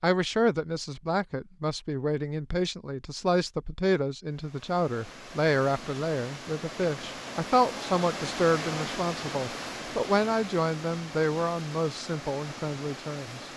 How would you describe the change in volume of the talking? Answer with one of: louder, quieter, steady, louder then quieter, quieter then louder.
steady.